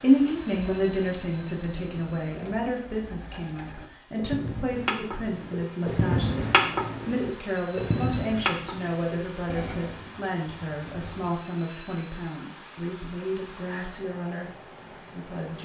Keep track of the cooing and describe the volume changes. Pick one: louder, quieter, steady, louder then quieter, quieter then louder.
louder then quieter.